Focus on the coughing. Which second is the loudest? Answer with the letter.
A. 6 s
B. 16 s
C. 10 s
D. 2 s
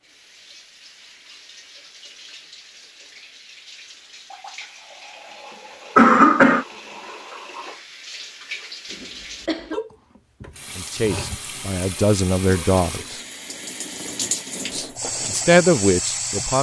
A.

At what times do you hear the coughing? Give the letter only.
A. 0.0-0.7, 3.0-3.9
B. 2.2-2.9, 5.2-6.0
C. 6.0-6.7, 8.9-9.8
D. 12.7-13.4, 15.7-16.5
C.